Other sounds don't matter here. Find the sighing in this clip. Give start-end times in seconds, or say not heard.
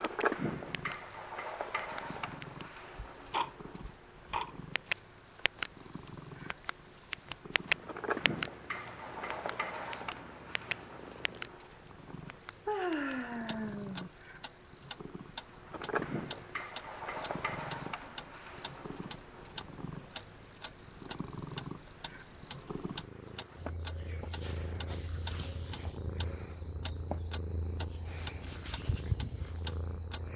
12.7-14.1.